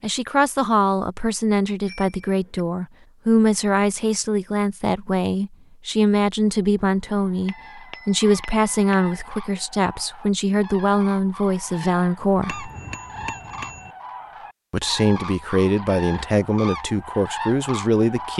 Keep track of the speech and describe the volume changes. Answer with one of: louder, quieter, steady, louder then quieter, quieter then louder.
steady.